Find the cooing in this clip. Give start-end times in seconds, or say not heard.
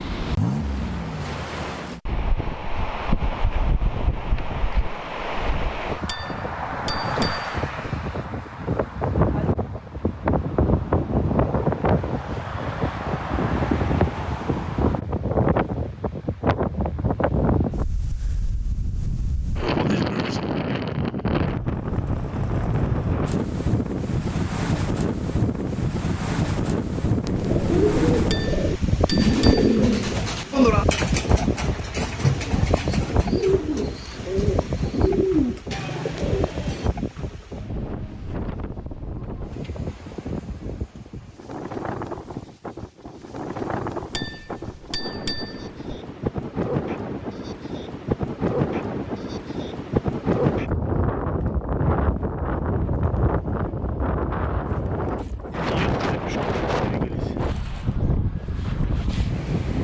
27.2-36.9.